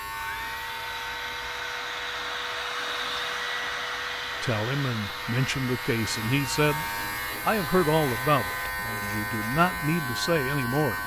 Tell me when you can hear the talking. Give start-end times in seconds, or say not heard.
4.4-6.8, 7.5-11.0.